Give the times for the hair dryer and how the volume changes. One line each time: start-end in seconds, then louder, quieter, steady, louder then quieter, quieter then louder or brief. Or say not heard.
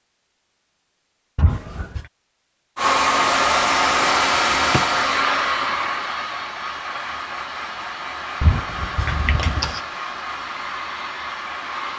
2.8-11.9 quieter.